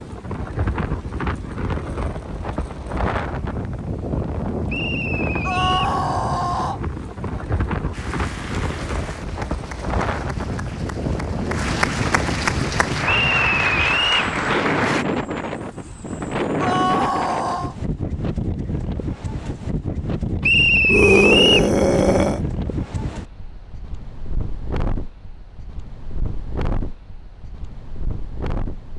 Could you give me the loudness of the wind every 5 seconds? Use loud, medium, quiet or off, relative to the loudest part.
loud, loud, loud, loud, loud, medium.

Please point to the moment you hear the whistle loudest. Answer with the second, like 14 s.
21 s.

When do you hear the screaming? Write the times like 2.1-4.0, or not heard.
5.4-6.8, 16.6-17.8, 20.9-22.4.